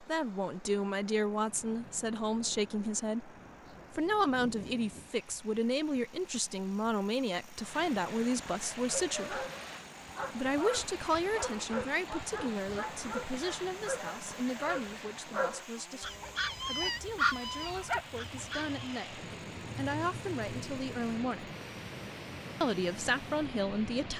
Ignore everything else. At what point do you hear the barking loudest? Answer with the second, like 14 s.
17 s.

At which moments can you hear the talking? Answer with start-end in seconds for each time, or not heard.
0.0-3.3, 3.9-9.4, 10.3-21.5, 22.6-24.1.